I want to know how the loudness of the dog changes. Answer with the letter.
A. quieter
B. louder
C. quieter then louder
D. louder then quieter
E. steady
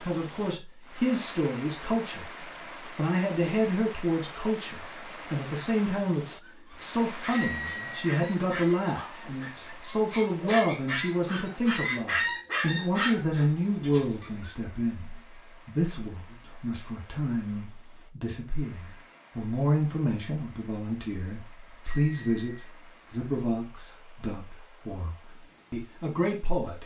B.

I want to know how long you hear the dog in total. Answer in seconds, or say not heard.
8 s.